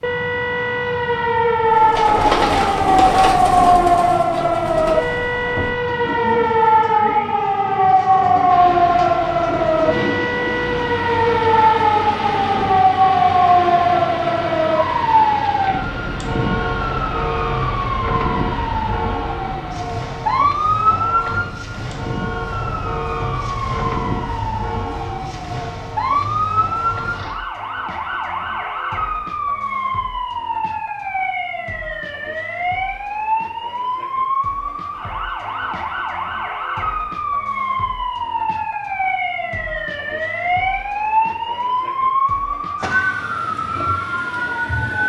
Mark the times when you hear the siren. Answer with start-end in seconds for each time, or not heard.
0.0-45.0.